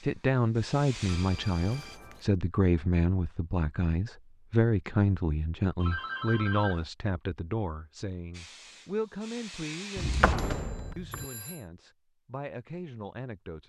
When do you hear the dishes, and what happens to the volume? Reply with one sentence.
The dishes can't be heard in this clip.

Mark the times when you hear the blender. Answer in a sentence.
The blender can't be heard in this clip.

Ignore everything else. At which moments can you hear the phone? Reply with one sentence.
The phone can be heard from 1.1 to 2.2 s, from 5.8 to 6.8 s and from 10.5 to 11.7 s.